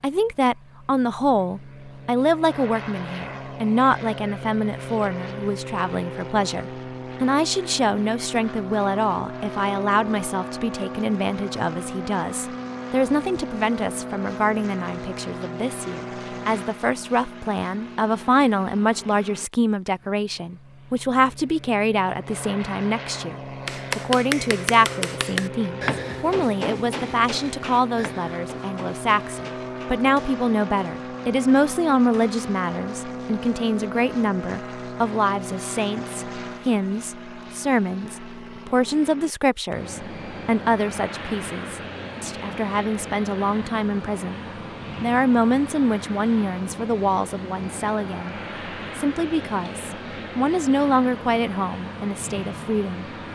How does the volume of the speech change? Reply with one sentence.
The loudness of the speech stays about the same.